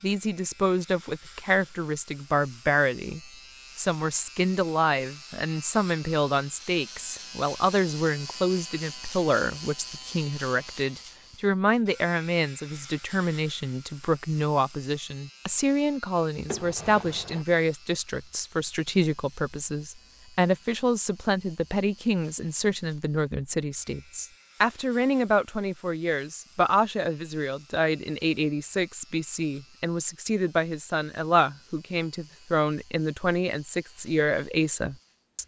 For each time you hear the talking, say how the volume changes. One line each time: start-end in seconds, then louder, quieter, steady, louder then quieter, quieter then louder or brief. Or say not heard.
0.0-35.4 steady.